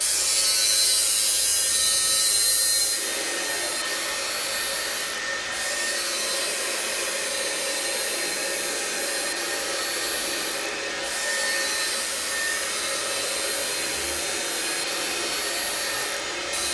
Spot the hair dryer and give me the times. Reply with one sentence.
The hair dryer can be heard from 0.0 to 16.7 s.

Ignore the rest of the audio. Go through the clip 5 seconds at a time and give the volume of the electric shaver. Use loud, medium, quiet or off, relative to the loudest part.
loud, medium, medium, medium.